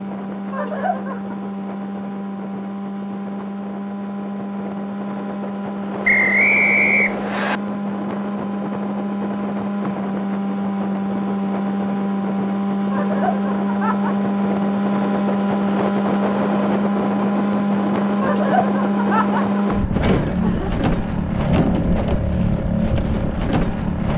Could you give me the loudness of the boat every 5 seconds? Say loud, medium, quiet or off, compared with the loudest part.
medium, medium, loud, loud, loud.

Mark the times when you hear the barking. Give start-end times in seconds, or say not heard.
not heard.